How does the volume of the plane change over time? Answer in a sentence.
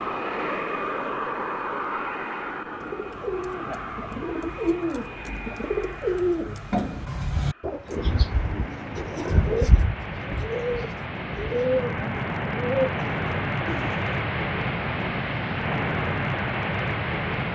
The loudness of the plane goes down, then up.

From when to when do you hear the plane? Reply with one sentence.
You can hear the plane from 0.0 to 17.5 s.